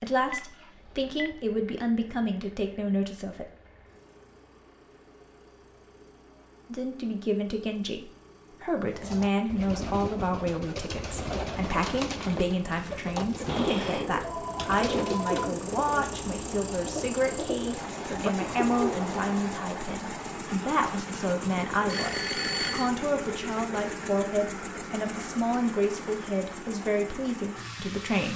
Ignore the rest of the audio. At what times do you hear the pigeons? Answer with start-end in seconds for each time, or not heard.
8.9-19.4.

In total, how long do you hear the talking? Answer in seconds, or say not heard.
25 s.